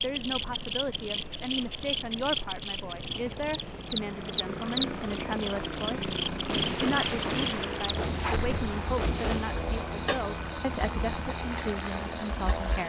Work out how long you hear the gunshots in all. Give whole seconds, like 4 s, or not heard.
3 s.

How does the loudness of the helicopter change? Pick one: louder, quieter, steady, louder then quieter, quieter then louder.
louder.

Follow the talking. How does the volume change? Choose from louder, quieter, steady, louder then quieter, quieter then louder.
steady.